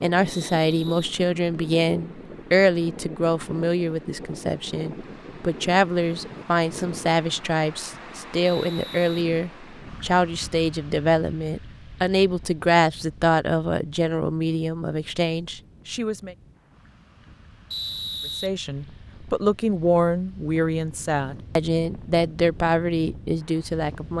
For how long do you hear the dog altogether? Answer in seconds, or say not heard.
not heard.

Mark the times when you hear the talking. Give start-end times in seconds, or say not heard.
0.0-16.4, 18.4-24.1.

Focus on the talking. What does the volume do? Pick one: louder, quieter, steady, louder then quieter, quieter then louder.
steady.